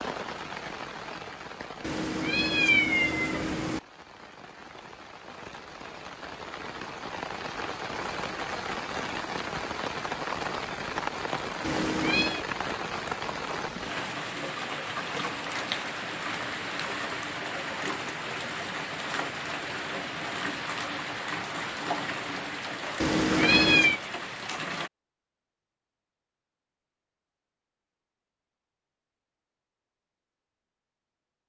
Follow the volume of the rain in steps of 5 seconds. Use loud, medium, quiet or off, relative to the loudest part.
medium, loud, loud, loud, loud, off, off.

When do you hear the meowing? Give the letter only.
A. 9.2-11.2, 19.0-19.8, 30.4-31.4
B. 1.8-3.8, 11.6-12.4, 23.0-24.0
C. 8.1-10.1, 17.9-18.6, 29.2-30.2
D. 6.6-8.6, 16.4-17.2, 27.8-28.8
B.